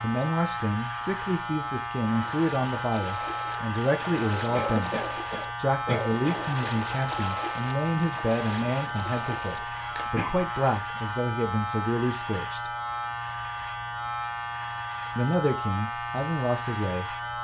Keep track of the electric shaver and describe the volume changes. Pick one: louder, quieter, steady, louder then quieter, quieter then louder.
steady.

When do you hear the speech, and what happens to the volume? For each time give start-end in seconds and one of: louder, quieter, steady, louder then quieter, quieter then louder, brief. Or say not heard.
0.0-12.7 steady
15.2-17.1 brief.